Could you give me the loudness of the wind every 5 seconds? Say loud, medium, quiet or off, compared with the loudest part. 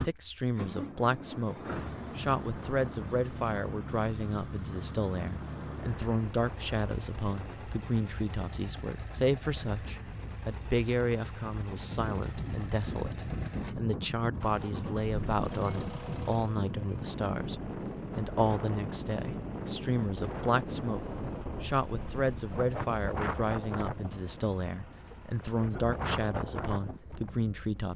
medium, medium, loud, loud, loud, loud.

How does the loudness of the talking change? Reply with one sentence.
The loudness of the talking stays about the same.